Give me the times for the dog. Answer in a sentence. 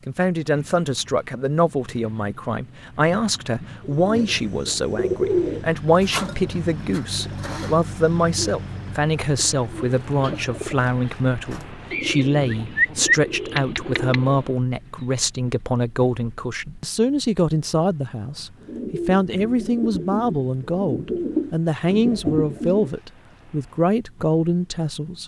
The dog can't be heard in this clip.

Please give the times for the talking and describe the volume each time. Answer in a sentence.
You can hear the talking from 0.1 to 25.2 s, at a steady volume.